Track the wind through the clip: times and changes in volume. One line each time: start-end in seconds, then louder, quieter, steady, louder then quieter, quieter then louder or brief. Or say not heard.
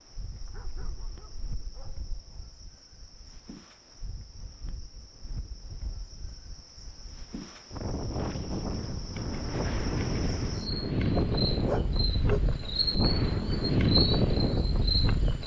0.0-15.4 louder.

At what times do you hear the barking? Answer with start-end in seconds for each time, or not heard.
0.4-2.1, 11.2-12.4.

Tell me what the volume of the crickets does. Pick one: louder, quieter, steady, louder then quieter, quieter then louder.
louder.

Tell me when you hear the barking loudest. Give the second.
12 s.